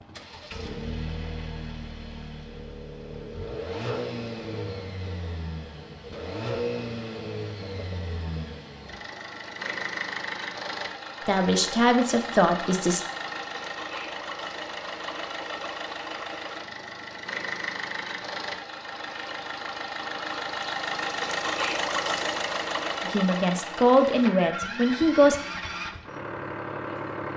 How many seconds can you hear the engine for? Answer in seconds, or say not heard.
27 s.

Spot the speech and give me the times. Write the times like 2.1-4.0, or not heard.
11.2-13.0, 23.1-25.4.